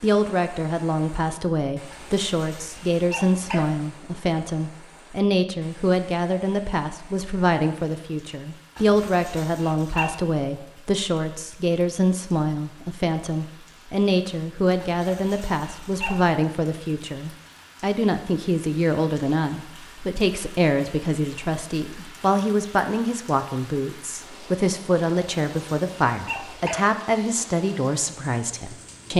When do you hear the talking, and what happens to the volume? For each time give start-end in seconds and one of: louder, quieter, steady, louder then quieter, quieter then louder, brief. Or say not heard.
0.0-29.1 steady.